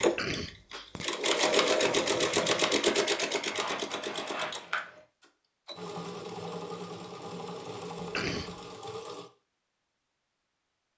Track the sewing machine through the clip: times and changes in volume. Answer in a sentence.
The sewing machine can be heard from 0.0 to 9.3 s, getting quieter.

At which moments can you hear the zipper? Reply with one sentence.
The zipper can be heard from 3.3 to 5.0 s.